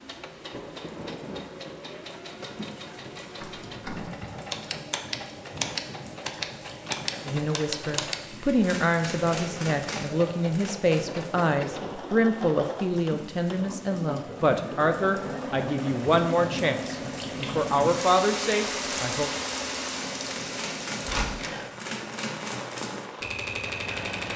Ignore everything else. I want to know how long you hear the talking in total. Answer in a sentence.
You can hear the talking for 12 seconds altogether.